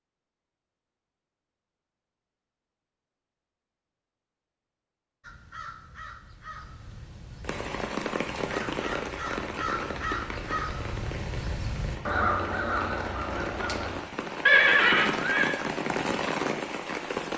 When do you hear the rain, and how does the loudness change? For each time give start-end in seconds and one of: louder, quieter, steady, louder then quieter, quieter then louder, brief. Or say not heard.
7.4-17.3 quieter then louder.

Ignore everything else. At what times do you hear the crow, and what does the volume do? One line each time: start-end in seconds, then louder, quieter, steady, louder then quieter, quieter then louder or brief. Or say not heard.
5.2-14.0 louder.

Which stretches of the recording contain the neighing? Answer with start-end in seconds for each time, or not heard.
14.4-15.6.